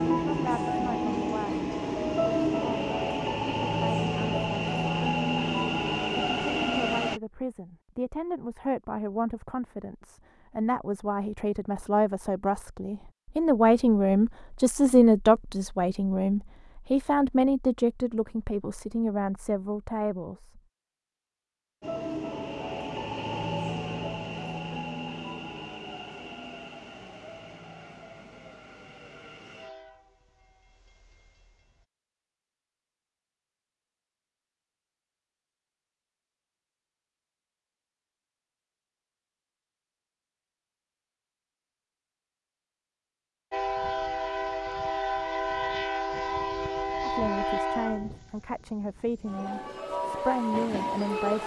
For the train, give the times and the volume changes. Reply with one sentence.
The train can be heard from 0.0 to 7.2 s, at a steady volume; from 21.8 to 31.9 s, getting quieter; and from 43.5 to 51.4 s, getting quieter then louder.